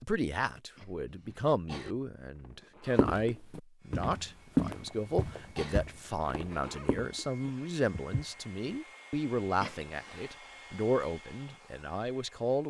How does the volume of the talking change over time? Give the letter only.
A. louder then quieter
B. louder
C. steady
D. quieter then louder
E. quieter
C.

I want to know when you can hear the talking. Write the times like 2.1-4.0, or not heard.
0.0-12.6.